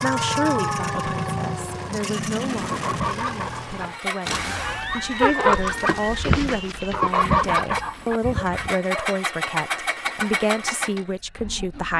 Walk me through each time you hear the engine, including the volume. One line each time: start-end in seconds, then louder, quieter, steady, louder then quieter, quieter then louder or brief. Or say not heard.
0.0-11.9 quieter then louder.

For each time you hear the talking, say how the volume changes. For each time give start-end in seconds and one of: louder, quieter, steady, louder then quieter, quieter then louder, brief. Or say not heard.
0.0-11.9 quieter then louder.